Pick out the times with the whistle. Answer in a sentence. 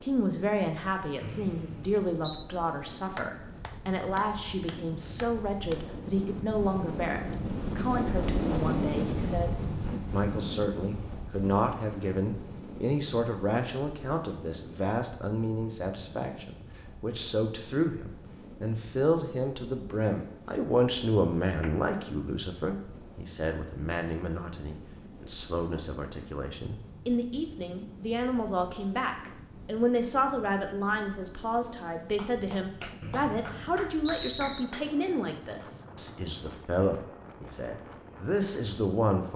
You can hear the whistle from 1.2 to 2.5 s and from 33.0 to 34.6 s.